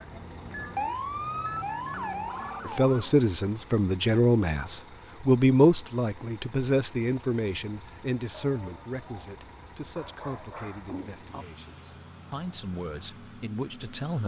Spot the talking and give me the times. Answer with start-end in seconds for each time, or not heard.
2.6-14.2.